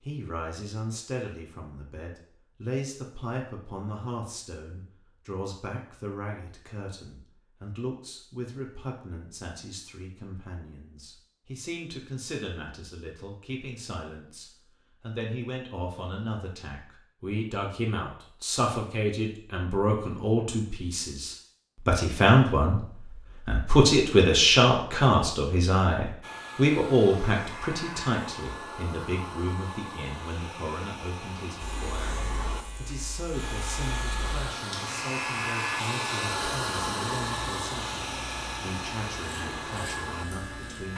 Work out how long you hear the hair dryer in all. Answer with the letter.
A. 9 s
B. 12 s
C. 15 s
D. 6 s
C.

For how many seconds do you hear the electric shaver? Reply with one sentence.
You can hear the electric shaver for 9 seconds altogether.